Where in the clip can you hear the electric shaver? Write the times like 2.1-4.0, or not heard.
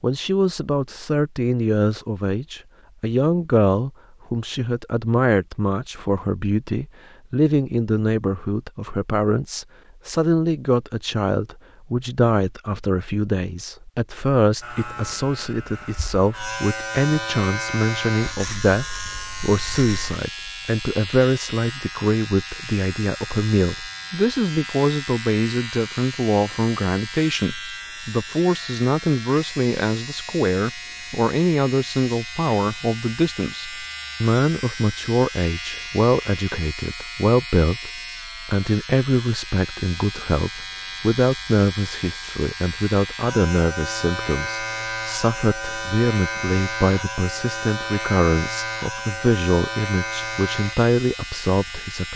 14.6-52.1.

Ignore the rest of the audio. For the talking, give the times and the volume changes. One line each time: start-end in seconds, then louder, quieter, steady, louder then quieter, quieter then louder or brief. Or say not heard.
0.0-52.1 steady.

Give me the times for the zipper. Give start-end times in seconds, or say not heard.
not heard.